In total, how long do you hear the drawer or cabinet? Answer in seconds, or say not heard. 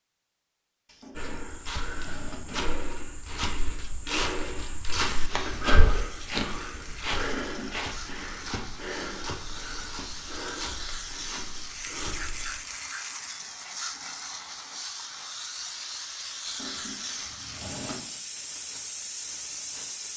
4 s.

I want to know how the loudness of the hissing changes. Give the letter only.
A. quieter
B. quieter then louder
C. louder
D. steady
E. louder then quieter
C.